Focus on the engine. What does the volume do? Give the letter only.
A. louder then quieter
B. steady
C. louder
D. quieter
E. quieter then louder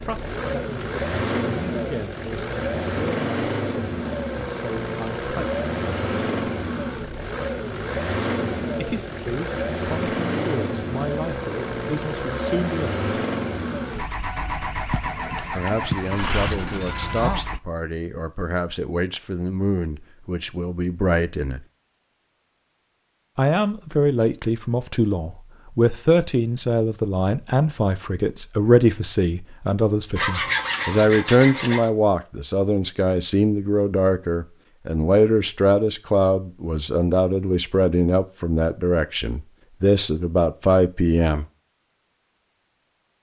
B.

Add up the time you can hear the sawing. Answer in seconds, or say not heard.
3 s.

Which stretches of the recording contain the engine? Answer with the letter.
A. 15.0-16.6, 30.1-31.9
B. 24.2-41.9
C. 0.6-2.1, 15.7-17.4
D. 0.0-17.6
D.